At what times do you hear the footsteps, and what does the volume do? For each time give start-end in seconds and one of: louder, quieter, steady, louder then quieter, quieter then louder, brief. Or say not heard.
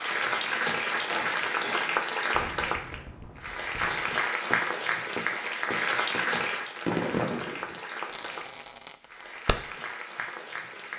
not heard.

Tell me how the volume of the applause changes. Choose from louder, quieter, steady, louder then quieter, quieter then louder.
quieter.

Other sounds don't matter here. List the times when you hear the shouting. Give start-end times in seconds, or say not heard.
not heard.